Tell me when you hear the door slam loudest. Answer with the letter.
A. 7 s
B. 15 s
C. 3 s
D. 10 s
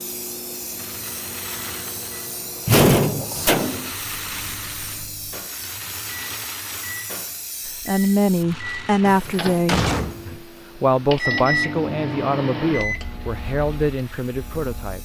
C.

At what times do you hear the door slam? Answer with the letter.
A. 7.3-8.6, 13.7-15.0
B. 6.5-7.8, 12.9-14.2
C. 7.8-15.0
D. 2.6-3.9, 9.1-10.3
D.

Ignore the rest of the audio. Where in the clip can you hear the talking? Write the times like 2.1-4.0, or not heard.
7.8-15.0.